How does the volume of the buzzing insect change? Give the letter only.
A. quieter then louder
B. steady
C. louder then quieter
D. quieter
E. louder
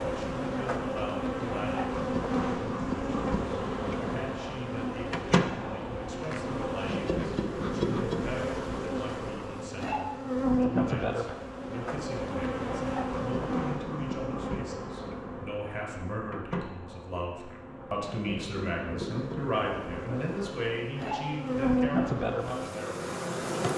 A.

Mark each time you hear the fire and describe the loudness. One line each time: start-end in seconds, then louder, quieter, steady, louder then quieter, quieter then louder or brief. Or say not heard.
not heard.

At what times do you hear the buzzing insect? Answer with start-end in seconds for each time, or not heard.
0.0-23.7.